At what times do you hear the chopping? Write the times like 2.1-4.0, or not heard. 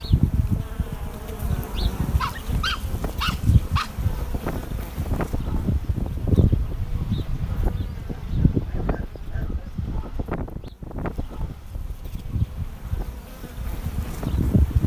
not heard.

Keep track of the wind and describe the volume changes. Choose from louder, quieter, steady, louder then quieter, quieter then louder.
louder then quieter.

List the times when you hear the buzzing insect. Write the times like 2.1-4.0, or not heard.
0.0-14.8.